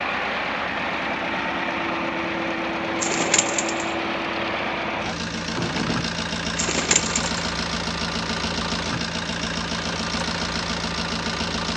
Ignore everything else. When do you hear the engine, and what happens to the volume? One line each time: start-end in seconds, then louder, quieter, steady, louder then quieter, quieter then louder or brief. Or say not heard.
0.0-11.7 steady.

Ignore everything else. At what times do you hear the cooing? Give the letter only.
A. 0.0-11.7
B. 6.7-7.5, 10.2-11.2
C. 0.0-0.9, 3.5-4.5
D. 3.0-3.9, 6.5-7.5
D.